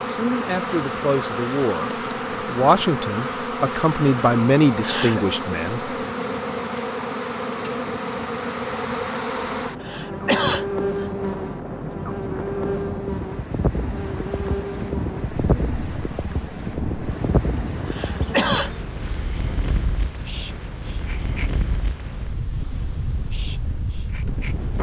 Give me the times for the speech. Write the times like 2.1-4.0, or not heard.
0.1-5.8.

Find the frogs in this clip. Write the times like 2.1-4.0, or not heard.
not heard.